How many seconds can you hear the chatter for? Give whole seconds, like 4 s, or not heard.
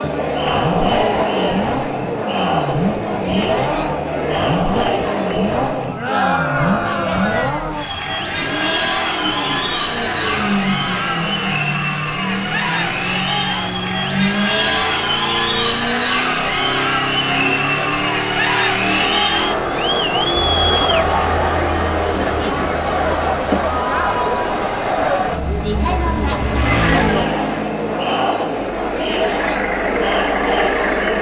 31 s.